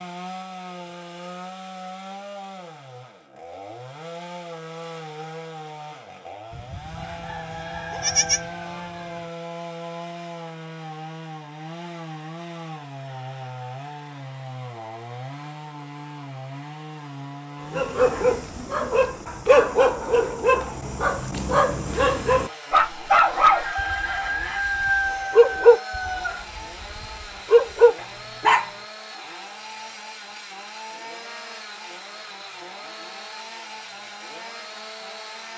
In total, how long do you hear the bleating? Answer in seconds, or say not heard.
2 s.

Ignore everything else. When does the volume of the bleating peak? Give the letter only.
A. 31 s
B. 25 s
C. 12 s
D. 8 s
D.